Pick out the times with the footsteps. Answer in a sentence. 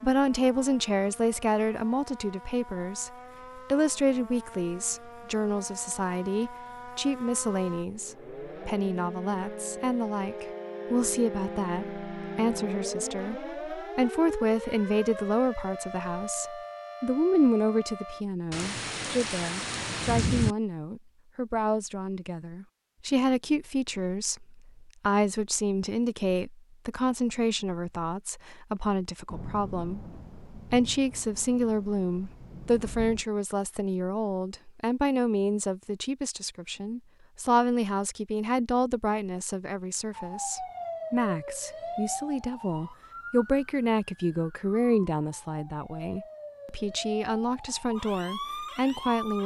You can't hear the footsteps here.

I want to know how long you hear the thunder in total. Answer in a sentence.
You can hear the thunder for 6 seconds altogether.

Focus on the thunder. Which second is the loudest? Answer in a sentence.
The volume of the thunder peaks at 20 seconds.